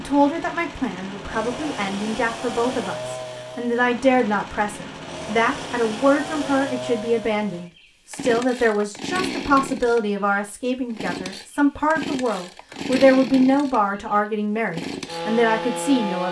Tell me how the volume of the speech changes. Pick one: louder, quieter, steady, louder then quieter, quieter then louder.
louder.